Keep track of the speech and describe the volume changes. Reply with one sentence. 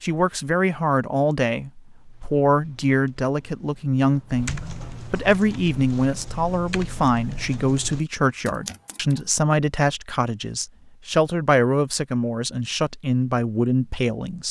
The volume of the speech stays about the same.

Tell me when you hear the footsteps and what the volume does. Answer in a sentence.
The footsteps can't be heard in this clip.